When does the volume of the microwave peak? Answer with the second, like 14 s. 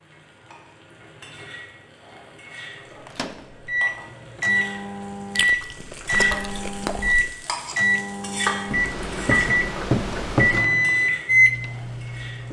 11 s.